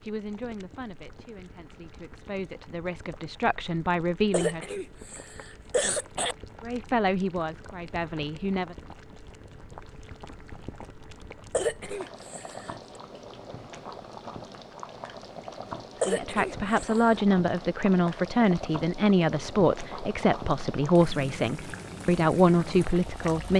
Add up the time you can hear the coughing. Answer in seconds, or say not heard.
5 s.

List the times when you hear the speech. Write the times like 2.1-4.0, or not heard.
0.0-4.8, 6.6-8.8, 16.1-23.5.